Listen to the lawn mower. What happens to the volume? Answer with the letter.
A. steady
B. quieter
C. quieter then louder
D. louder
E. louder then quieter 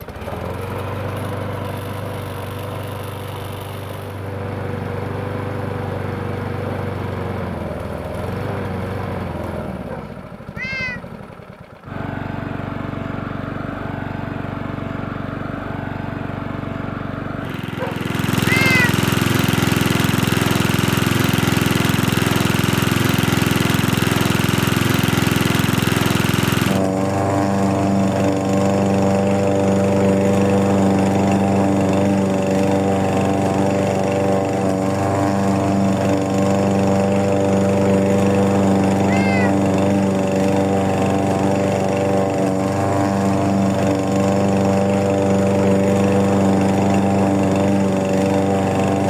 D.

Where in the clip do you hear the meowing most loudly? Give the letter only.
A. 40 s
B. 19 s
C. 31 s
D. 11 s
B.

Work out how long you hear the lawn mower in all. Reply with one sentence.
The lawn mower can be heard for 49 seconds in total.